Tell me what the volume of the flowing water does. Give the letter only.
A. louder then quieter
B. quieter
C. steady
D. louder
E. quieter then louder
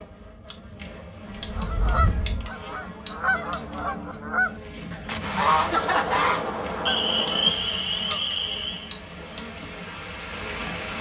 E.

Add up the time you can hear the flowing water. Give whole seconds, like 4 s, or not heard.
6 s.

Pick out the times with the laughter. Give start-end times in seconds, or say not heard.
5.7-6.4.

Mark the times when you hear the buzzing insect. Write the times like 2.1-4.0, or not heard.
0.0-10.9.